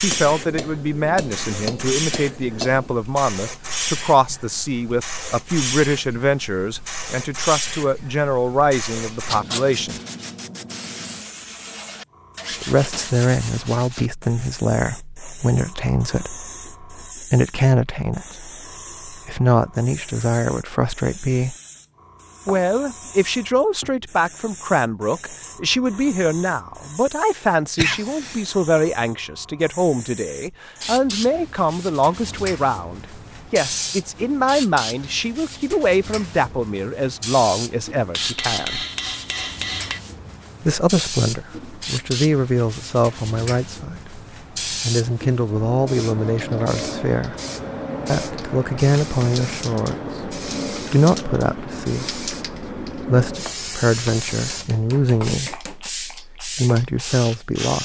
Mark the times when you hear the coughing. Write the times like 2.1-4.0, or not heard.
27.8-28.4.